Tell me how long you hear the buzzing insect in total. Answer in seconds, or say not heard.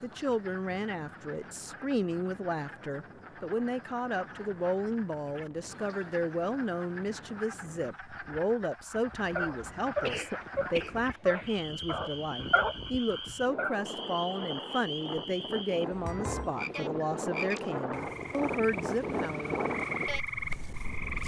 not heard.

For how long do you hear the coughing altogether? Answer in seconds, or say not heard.
2 s.